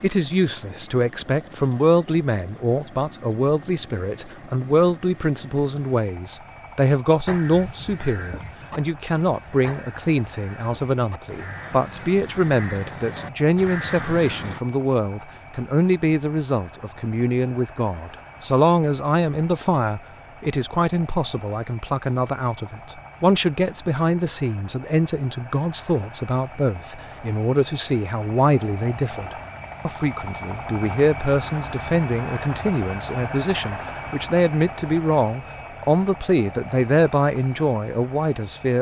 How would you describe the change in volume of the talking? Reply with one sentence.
The volume of the talking stays about the same.